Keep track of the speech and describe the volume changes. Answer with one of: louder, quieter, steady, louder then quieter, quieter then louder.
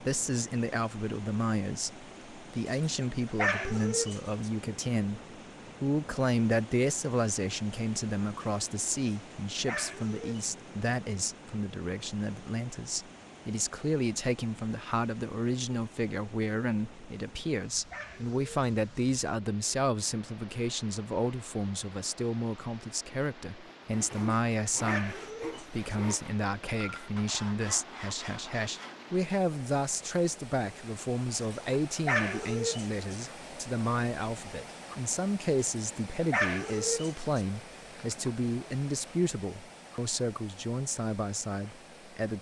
steady.